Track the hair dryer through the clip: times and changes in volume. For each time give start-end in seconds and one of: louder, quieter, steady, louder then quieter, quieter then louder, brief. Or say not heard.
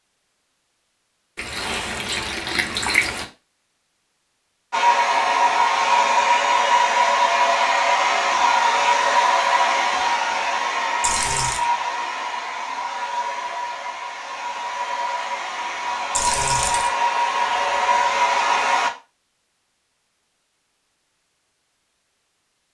4.7-18.9 quieter then louder.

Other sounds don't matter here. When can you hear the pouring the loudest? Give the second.
3 s.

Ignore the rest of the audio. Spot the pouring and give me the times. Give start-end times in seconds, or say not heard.
1.4-3.2, 11.0-11.7, 16.1-16.9.